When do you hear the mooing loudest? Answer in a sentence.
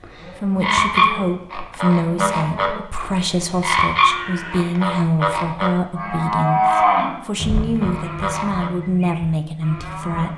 The volume of the mooing peaks at 7 seconds.